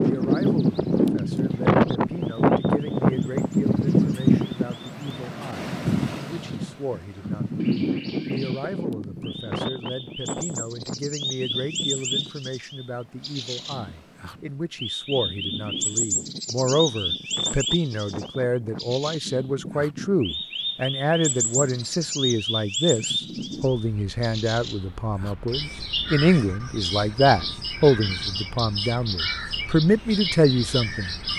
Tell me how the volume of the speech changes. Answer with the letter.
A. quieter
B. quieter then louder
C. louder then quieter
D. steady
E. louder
E.